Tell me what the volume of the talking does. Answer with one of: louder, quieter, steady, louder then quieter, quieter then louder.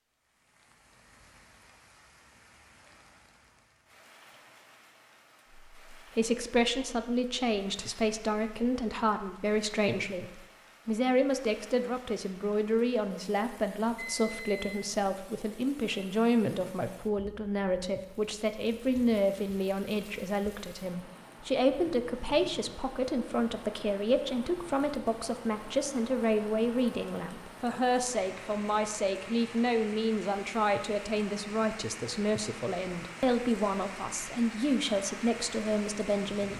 steady.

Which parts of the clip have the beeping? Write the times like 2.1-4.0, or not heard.
13.9-14.8.